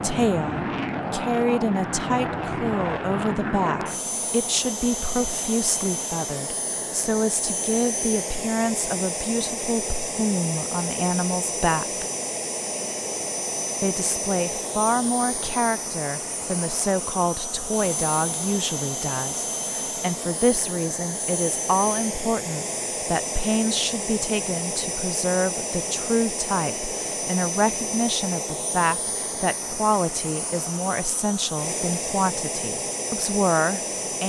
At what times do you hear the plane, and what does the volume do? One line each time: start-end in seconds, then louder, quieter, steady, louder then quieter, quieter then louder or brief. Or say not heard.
0.0-34.2 steady.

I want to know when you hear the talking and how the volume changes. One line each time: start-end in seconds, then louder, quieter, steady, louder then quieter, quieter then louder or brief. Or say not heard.
0.0-12.1 steady
13.8-34.2 steady.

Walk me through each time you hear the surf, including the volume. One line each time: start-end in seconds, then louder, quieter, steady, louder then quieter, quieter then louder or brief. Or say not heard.
not heard.